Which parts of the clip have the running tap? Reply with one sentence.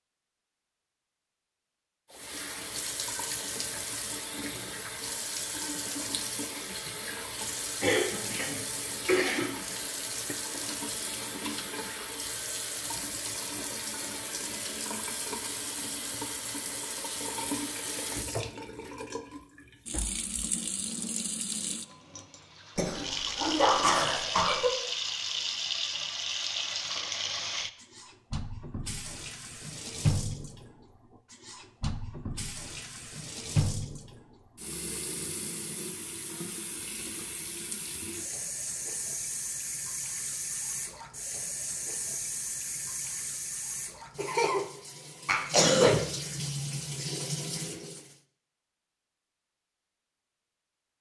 You can hear the running tap from 2.1 to 48.1 s.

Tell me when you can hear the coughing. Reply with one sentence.
The coughing can be heard from 7.8 to 9.4 s, from 22.8 to 24.7 s and from 45.2 to 46.0 s.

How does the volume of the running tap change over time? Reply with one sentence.
The volume of the running tap stays about the same.